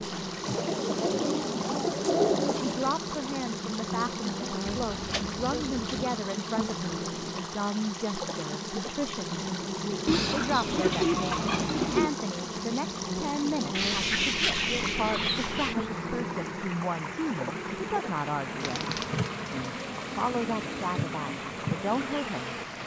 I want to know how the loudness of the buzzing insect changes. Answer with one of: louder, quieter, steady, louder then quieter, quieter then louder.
steady.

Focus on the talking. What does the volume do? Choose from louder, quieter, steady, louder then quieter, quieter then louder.
steady.